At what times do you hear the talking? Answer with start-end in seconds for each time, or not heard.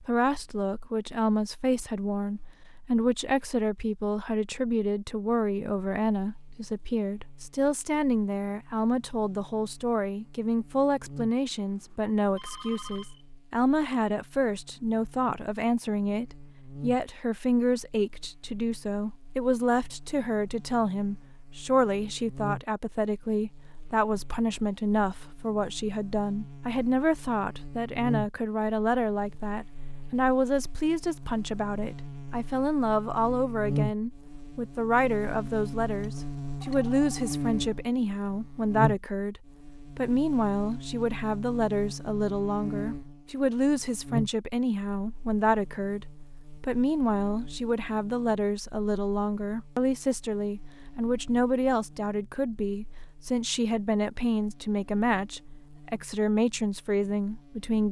0.0-57.8.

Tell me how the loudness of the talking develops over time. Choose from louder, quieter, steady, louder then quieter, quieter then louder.
steady.